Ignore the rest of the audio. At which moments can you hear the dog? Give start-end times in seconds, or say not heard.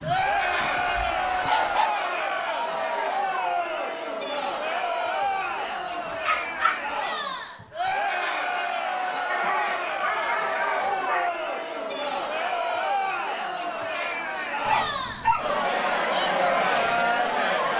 0.0-1.9, 6.2-6.8, 9.3-11.3, 14.7-15.5.